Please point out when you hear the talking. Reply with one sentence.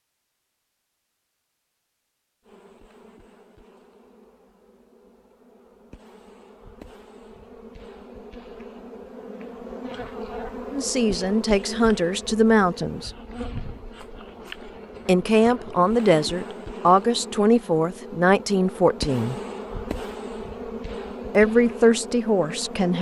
You can hear the talking from 10.7 to 13.1 s, from 15.1 to 19.4 s and from 21.3 to 22.9 s.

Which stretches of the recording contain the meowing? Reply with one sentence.
You can't hear the meowing here.